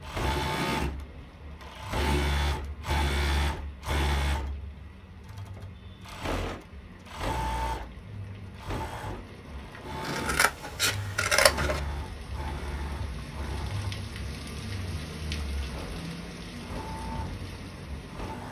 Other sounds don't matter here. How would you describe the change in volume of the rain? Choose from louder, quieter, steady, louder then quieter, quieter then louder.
louder.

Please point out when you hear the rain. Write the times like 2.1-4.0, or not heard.
0.0-18.4.